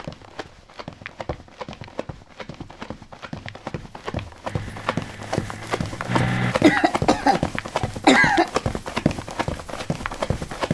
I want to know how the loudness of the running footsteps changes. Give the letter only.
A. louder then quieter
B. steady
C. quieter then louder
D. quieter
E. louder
E.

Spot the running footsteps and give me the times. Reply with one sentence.
The running footsteps can be heard from 0.0 to 10.6 s.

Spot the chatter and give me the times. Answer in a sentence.
You can't hear the chatter here.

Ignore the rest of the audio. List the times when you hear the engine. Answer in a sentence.
You can hear the engine from 4.5 to 6.5 s.